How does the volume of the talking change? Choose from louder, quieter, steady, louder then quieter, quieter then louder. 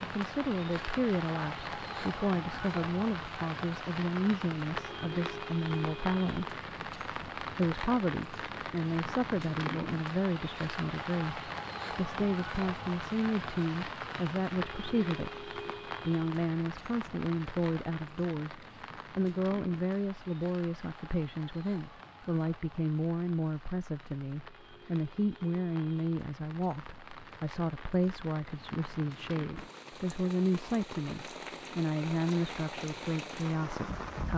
steady.